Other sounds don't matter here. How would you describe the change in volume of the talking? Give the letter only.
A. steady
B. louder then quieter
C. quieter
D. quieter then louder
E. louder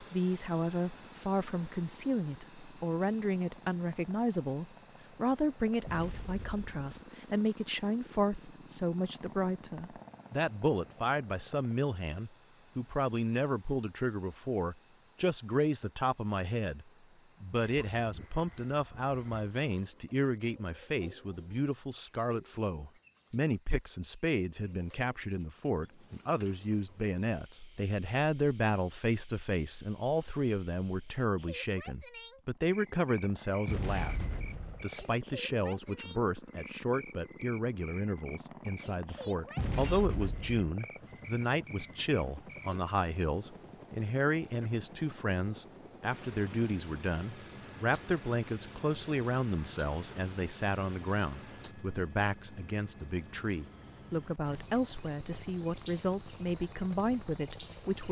A.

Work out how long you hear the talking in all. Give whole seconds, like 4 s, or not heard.
58 s.